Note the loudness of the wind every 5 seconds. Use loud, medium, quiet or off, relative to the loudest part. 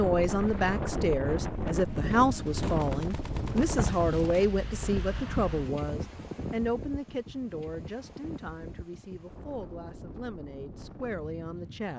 loud, medium, quiet.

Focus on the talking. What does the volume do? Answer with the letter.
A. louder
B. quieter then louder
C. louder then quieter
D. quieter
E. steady
D.